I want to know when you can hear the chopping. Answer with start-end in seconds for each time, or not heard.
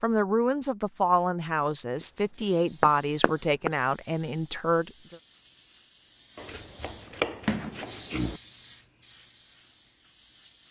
2.0-3.7, 6.3-8.4.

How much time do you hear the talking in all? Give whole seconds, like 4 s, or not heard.
5 s.